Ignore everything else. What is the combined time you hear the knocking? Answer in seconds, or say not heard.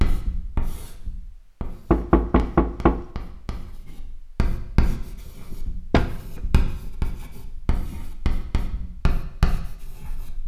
2 s.